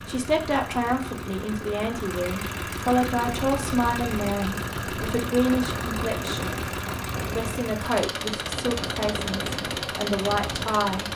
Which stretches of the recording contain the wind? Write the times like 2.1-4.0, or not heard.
3.2-11.1.